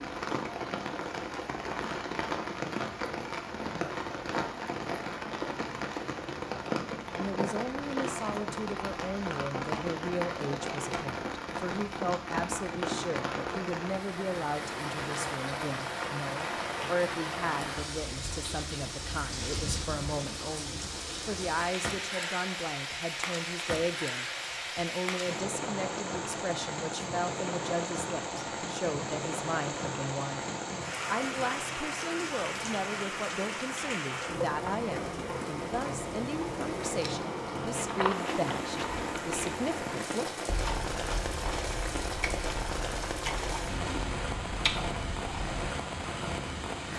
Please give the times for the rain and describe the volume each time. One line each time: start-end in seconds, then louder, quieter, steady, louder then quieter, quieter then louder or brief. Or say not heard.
0.0-46.9 steady.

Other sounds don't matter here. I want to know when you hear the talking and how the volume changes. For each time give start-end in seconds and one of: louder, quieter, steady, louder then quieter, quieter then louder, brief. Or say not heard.
7.2-40.4 steady.